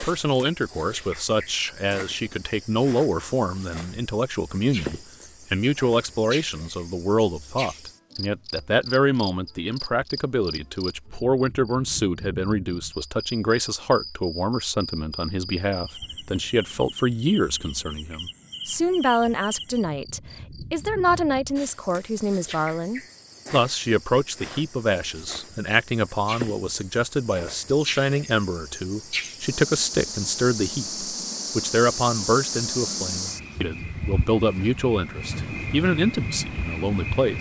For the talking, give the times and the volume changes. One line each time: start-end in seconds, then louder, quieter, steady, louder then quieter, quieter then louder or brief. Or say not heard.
0.0-37.3 steady.